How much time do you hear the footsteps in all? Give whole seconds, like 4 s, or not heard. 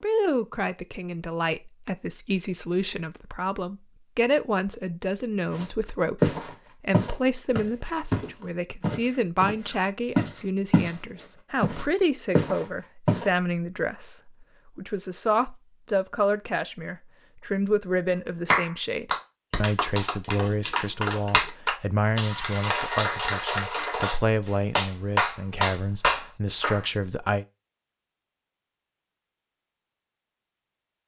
7 s.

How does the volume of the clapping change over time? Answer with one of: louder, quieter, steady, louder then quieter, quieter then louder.
louder.